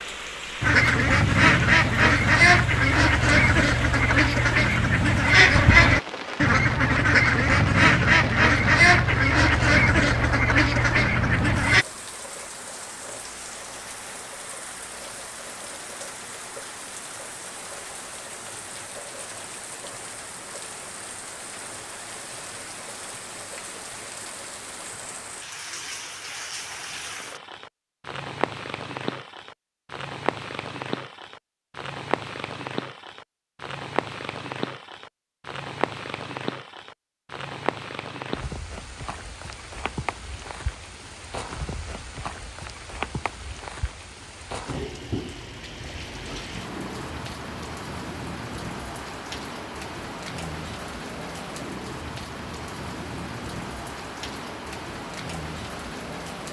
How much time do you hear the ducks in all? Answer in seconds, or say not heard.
11 s.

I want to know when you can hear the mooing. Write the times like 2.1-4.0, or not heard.
not heard.